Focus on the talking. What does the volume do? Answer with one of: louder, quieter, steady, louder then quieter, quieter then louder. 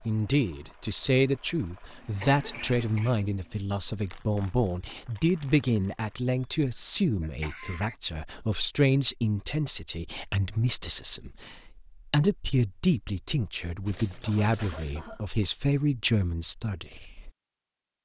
steady.